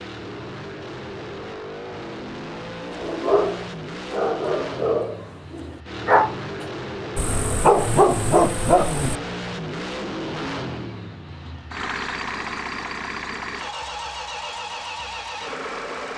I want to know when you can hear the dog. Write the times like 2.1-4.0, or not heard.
2.9-9.2.